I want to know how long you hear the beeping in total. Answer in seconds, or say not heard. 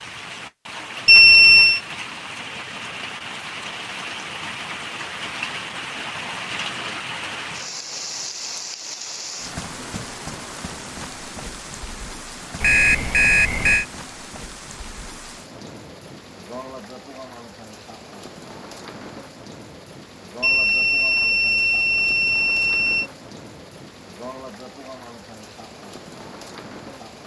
5 s.